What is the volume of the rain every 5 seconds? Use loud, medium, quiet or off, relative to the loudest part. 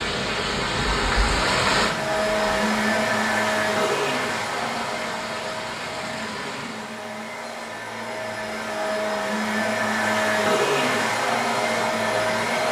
loud, medium, off.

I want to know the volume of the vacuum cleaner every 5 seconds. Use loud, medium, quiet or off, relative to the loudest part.
loud, medium, loud.